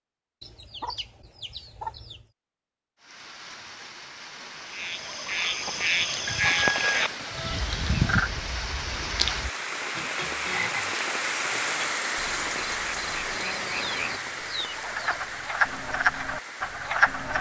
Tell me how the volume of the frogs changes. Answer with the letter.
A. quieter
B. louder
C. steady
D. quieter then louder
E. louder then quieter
D.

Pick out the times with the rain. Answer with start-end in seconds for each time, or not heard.
3.0-17.3.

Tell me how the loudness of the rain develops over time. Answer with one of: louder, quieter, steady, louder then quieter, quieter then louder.
louder then quieter.